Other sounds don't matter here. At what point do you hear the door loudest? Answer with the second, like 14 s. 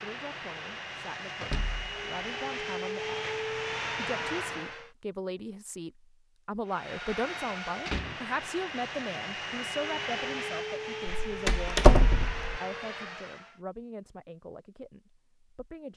12 s.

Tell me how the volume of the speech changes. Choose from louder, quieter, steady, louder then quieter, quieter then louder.
louder then quieter.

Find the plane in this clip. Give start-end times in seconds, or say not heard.
0.0-4.9, 6.7-13.6.